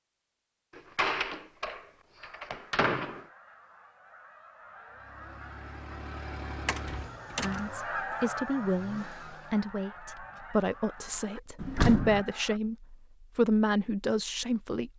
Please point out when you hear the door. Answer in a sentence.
You can hear the door from 0.8 to 3.2 s, from 6.7 to 7.7 s and from 11.6 to 12.2 s.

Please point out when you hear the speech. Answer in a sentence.
You can hear the speech from 7.4 to 14.9 s.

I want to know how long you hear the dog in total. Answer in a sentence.
The dog can't be heard in this clip.